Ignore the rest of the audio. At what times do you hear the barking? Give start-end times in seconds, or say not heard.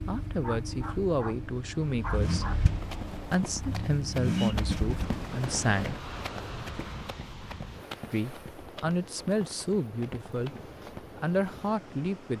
0.4-2.6.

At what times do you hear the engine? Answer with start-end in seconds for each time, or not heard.
0.0-5.2.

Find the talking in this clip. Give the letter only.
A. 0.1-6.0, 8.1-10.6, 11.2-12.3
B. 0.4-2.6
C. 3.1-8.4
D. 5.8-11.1
A.